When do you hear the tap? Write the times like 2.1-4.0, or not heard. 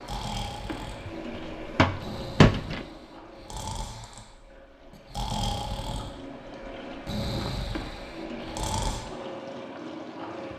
0.0-10.5.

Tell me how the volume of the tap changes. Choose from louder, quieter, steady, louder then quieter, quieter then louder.
quieter then louder.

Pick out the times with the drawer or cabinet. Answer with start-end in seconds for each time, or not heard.
1.1-2.9.